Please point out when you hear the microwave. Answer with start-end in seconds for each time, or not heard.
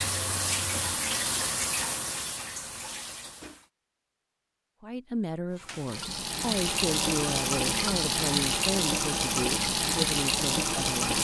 not heard.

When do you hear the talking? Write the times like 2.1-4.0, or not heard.
4.8-11.2.